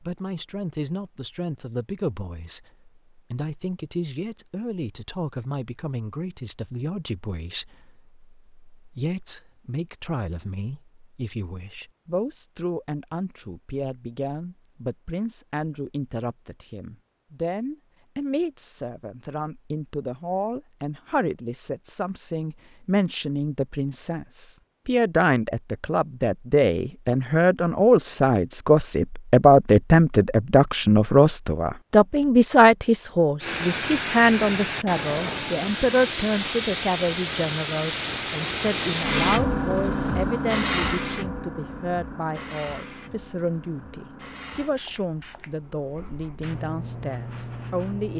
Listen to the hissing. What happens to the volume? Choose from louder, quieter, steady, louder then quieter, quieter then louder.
quieter.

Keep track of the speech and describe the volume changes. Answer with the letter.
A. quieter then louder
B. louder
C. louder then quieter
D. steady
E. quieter
C.